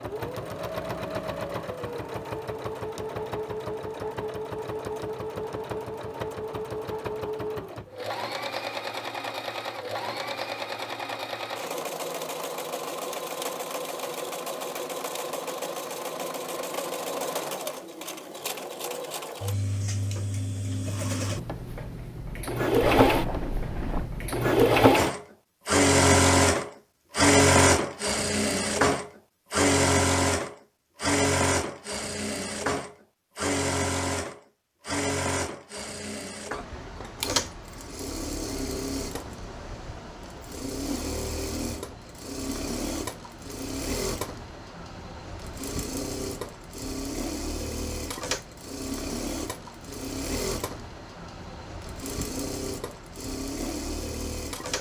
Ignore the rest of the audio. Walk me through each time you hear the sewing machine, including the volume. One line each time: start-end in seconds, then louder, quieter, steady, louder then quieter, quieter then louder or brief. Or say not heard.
0.0-54.7 louder then quieter.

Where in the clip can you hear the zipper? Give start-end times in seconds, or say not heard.
22.8-24.1.